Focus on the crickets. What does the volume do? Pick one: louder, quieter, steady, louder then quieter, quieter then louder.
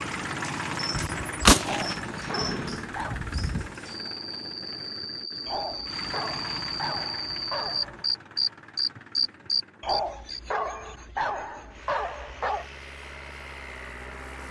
louder.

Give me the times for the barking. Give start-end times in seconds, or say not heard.
1.6-3.2, 5.5-8.0, 9.8-12.7.